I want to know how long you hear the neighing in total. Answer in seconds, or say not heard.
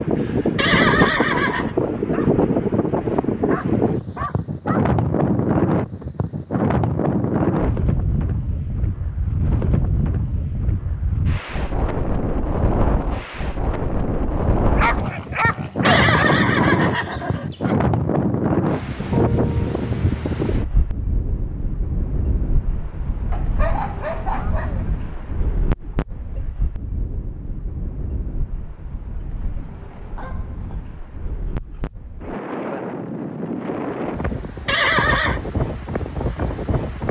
4 s.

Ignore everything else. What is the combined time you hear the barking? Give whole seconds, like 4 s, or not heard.
8 s.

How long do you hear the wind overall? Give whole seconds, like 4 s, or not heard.
37 s.